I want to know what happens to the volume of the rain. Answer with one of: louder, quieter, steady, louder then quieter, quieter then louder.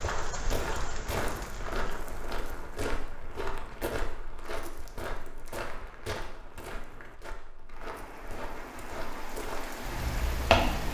quieter then louder.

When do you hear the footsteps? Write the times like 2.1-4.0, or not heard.
0.0-10.9.